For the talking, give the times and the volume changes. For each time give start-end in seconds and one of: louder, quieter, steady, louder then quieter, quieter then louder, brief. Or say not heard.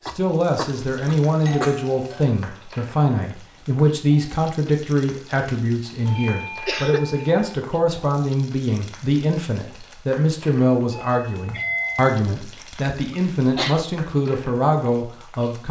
0.1-15.6 steady.